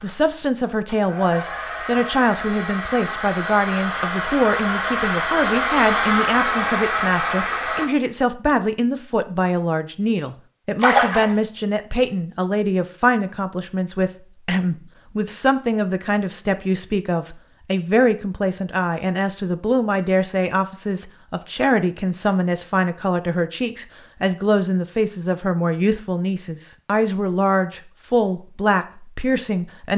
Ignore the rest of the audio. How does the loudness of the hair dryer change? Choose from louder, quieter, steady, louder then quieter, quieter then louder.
louder.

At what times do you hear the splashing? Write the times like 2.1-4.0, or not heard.
10.8-11.6.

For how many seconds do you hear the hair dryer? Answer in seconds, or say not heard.
8 s.